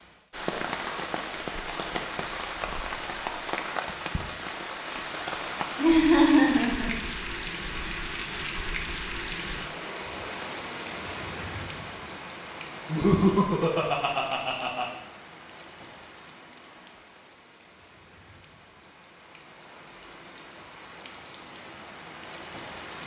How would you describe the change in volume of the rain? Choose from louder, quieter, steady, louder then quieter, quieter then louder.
quieter.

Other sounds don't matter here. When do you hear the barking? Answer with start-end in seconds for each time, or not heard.
not heard.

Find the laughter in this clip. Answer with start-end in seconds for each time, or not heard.
5.8-6.9, 12.8-14.8.